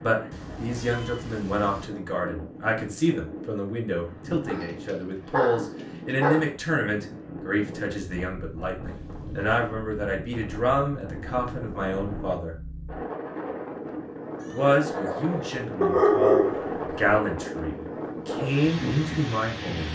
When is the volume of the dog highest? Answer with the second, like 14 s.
16 s.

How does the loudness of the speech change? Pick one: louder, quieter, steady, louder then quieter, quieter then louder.
steady.